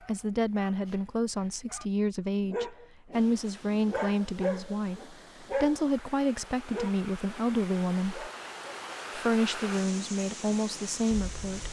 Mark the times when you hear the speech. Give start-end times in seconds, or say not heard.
0.1-8.3, 9.2-11.6.